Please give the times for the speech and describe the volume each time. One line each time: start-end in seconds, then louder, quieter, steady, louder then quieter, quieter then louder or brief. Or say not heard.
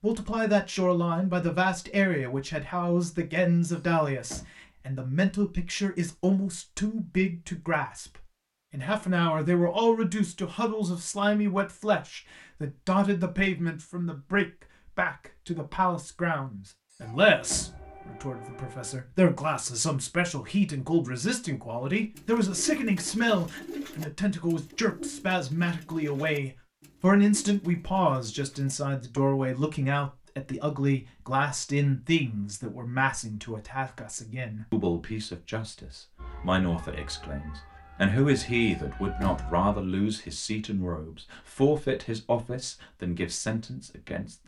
0.0-44.4 steady.